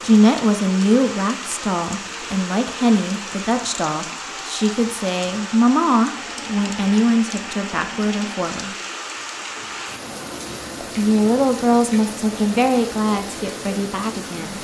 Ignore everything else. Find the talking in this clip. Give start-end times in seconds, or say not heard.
0.0-8.8, 10.8-14.5.